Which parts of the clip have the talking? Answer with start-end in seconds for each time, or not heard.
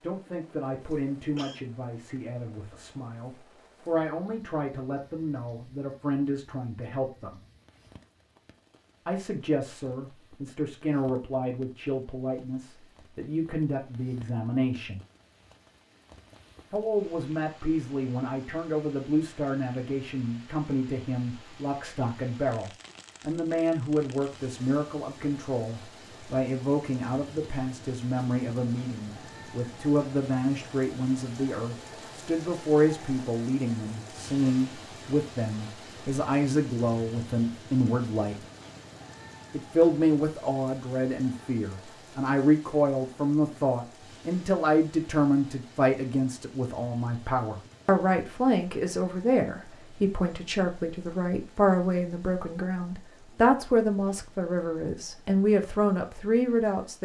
0.0-7.4, 9.1-15.0, 16.7-38.4, 39.5-57.0.